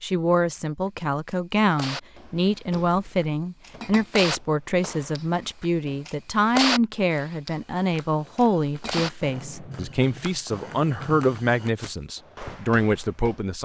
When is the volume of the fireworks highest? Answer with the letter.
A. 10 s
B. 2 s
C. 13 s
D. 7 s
D.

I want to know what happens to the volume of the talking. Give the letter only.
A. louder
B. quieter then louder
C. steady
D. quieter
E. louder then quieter
C.